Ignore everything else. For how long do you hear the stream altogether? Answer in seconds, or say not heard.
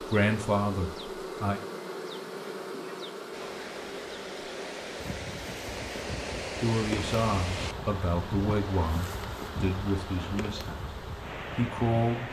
9 s.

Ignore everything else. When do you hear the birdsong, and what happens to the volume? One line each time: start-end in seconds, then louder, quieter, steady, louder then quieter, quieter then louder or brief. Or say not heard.
not heard.